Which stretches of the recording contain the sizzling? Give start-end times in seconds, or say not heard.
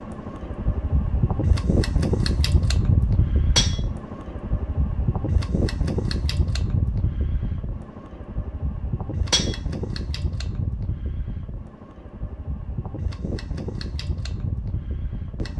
not heard.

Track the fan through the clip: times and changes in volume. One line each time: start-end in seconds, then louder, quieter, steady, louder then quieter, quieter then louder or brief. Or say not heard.
0.0-15.5 quieter.